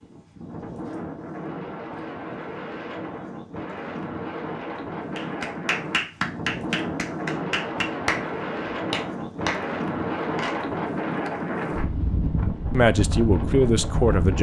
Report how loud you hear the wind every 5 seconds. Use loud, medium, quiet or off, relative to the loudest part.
medium, loud, loud.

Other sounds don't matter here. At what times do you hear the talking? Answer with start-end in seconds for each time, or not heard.
12.7-14.3.